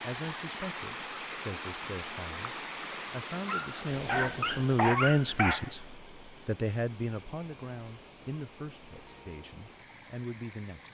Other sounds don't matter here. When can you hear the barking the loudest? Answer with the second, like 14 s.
5 s.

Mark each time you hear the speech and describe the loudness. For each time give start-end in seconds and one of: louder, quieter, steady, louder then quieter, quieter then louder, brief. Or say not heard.
0.0-10.8 louder then quieter.